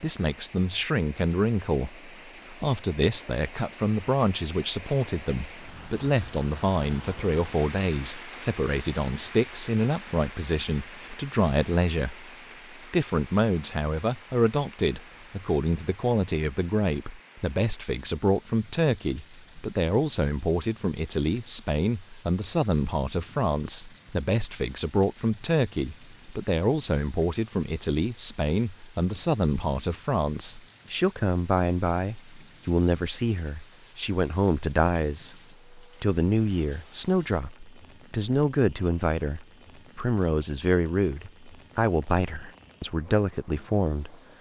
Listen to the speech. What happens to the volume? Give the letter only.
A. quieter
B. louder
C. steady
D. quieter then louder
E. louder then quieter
C.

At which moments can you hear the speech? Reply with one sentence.
You can hear the speech from 0.0 to 12.3 s and from 12.9 to 44.1 s.